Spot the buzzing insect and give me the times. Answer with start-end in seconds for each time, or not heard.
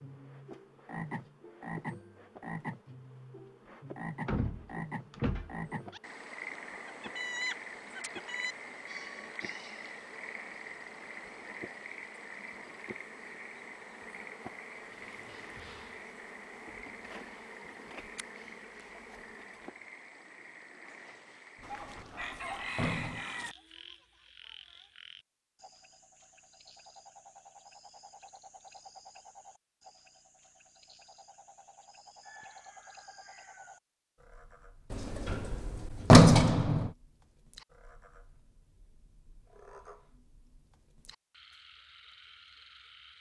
0.0-19.8.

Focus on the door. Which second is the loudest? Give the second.
36 s.